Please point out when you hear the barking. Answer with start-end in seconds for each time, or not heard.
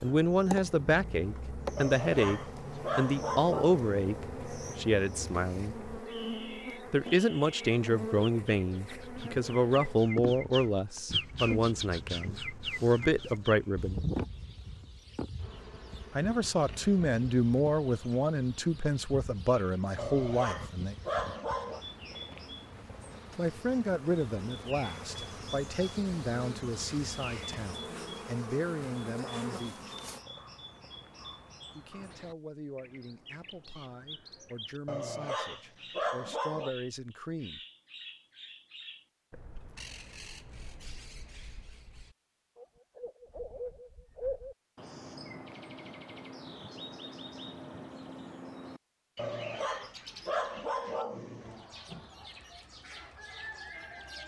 1.8-4.0, 19.9-21.8, 34.9-36.7, 49.1-51.6.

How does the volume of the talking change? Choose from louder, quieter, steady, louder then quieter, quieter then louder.
quieter.